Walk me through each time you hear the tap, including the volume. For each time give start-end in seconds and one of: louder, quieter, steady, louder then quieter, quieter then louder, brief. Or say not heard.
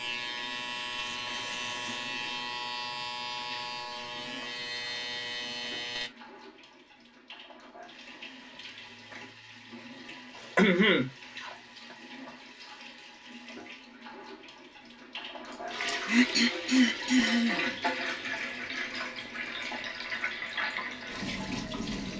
0.0-22.1 louder.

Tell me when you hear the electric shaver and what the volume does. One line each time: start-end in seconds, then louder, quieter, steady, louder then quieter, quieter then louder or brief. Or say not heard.
0.0-6.1 steady.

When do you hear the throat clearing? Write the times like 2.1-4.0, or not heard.
1.3-2.1, 10.6-11.6, 15.9-17.8.